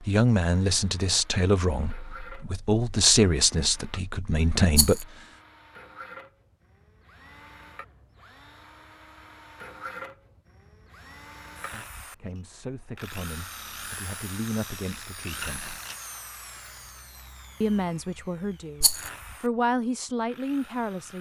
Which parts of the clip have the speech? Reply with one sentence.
The speech can be heard from 0.0 to 5.0 s, from 11.7 to 15.8 s and from 17.6 to 21.1 s.